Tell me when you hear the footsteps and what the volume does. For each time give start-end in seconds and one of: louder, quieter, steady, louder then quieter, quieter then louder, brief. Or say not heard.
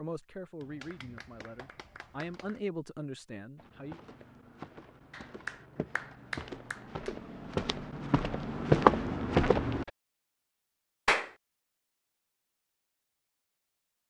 3.5-9.9 louder.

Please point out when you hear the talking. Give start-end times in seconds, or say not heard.
0.0-4.0.